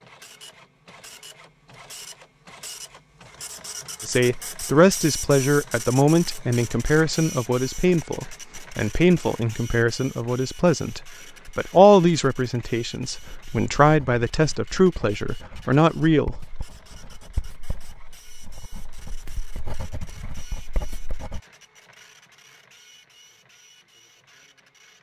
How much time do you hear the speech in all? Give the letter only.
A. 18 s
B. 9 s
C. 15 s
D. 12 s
D.